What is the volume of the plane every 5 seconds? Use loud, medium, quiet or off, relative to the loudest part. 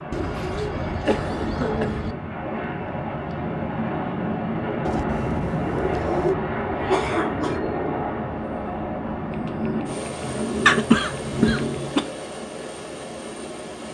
loud, loud, medium.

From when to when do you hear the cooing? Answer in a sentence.
The cooing can be heard from 0.1 to 2.1 s, from 4.8 to 6.3 s and from 9.3 to 11.8 s.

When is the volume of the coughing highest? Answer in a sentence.
The loudest moment of the coughing is at 11 seconds.